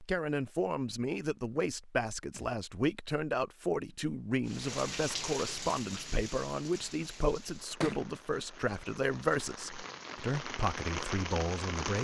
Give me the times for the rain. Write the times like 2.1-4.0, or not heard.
4.5-11.9.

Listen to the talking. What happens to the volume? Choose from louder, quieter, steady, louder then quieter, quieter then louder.
steady.